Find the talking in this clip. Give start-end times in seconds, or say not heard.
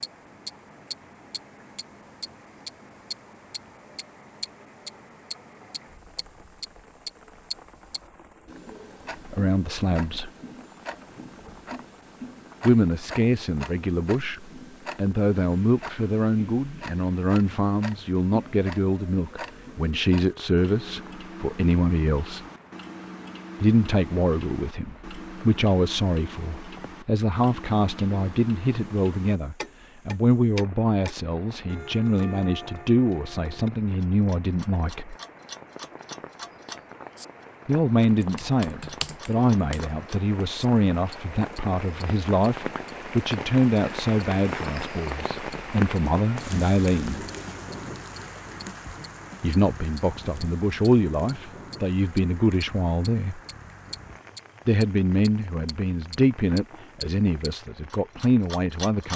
9.2-10.3, 12.6-22.4, 23.6-35.1, 37.6-47.2, 49.4-53.4, 54.6-59.1.